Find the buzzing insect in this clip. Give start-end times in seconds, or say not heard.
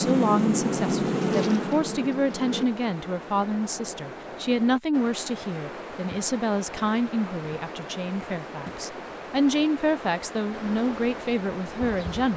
0.0-2.6, 10.5-12.3.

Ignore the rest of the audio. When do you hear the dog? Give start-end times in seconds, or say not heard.
not heard.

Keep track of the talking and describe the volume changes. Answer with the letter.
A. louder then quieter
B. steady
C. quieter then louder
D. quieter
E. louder
B.